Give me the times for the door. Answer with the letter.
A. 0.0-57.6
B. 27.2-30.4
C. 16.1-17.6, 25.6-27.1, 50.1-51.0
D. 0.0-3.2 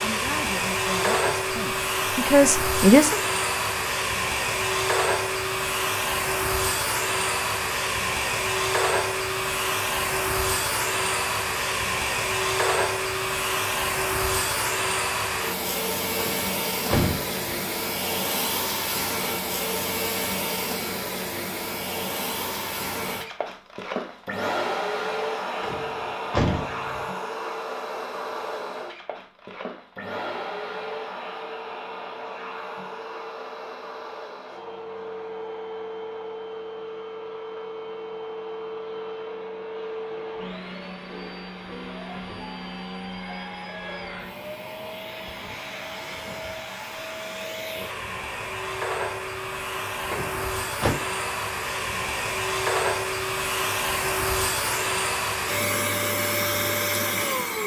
C.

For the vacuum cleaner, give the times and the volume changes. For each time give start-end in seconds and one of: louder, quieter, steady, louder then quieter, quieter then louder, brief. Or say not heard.
0.0-57.6 quieter then louder.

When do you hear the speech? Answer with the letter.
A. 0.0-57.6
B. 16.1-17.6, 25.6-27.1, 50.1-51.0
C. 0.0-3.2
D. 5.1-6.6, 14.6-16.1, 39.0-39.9
C.